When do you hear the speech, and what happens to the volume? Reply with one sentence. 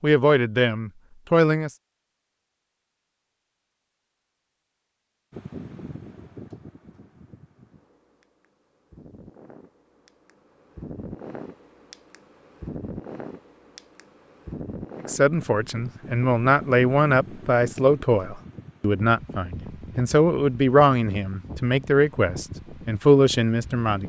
The speech can be heard briefly from 0.0 to 1.7 s; and from 15.1 to 24.0 s, at a steady volume.